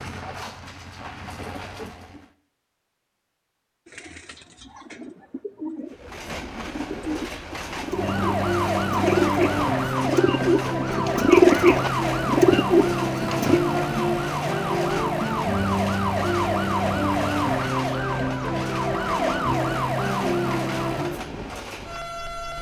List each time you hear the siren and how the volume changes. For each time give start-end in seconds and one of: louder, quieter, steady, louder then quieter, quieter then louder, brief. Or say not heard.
7.8-21.2 steady.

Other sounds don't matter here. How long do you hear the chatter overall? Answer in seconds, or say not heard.
not heard.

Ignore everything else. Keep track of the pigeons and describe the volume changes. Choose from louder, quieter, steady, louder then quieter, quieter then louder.
louder.